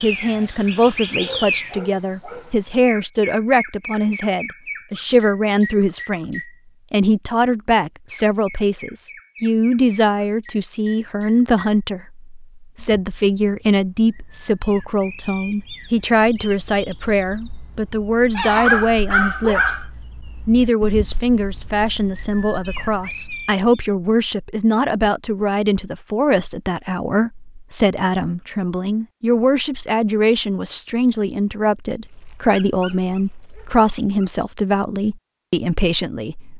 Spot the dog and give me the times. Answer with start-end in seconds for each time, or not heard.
1.0-2.7, 18.4-19.9, 32.0-34.2.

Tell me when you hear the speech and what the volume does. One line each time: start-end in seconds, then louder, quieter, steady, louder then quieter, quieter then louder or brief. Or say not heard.
0.0-19.9 steady
20.4-36.5 steady.